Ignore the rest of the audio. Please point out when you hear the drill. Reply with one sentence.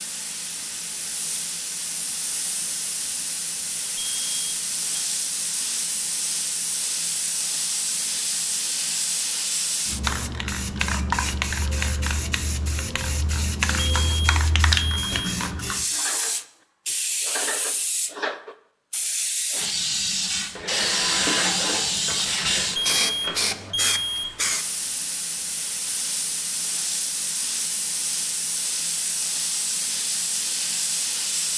You can hear the drill from 20.1 to 24.6 s.